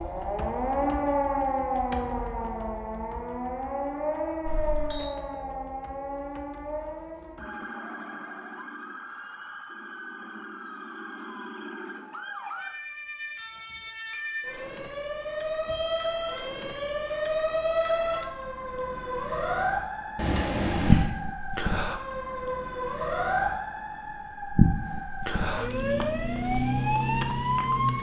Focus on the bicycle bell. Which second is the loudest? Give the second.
21 s.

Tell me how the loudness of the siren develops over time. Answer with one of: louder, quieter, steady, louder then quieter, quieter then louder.
quieter then louder.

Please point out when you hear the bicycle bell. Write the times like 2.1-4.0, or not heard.
4.5-5.1, 15.7-17.1, 20.1-21.1.